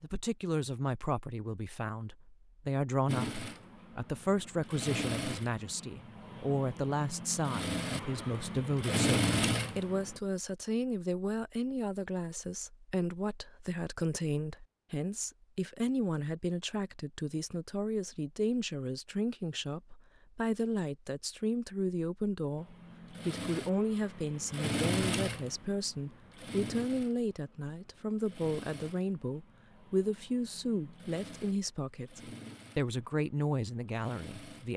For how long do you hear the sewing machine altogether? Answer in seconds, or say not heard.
19 s.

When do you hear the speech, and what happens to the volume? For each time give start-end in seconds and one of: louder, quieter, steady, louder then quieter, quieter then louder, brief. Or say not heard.
0.0-34.7 steady.